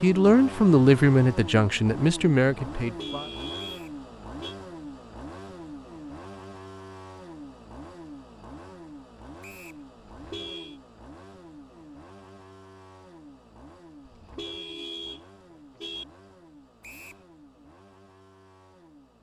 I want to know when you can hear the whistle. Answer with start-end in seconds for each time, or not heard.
3.5-4.0, 9.4-9.8, 16.8-17.2.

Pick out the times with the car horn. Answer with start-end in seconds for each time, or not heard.
2.8-4.5, 10.1-10.8, 14.1-16.1.